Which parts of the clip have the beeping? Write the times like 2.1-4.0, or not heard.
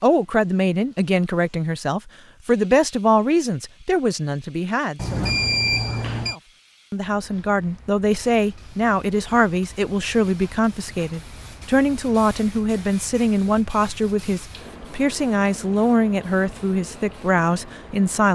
5.0-6.3.